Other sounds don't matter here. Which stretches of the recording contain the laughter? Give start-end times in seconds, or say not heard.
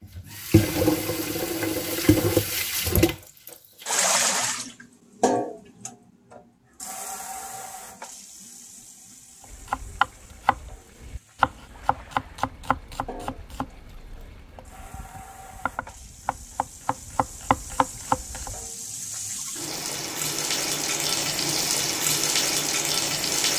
not heard.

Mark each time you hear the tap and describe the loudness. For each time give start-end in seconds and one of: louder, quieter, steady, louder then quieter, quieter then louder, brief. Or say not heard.
0.0-23.5 quieter then louder.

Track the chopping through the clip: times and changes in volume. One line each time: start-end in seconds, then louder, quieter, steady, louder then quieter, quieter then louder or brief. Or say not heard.
9.5-18.6 quieter then louder.